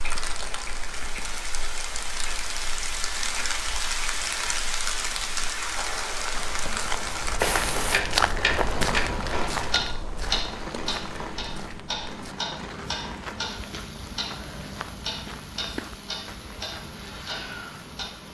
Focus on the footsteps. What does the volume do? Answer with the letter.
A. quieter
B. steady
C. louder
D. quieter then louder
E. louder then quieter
E.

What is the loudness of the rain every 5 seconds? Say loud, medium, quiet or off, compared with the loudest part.
loud, loud, medium, quiet.